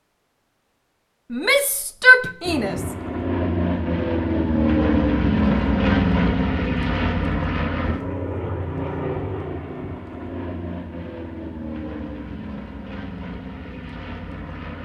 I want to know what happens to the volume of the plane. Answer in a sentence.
The loudness of the plane goes down.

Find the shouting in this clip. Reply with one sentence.
You can hear the shouting from 1.3 to 2.8 s.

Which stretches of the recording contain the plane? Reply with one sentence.
The plane can be heard from 2.4 to 14.8 s.